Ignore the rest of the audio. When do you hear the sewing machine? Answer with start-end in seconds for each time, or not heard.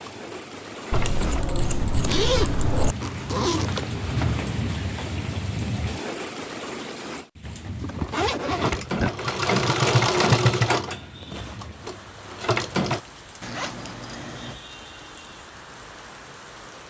0.0-1.6, 8.0-13.0.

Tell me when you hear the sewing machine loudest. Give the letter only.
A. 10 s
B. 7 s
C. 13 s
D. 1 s
A.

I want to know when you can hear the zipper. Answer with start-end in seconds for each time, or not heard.
2.0-3.9, 7.8-9.1, 13.4-14.6.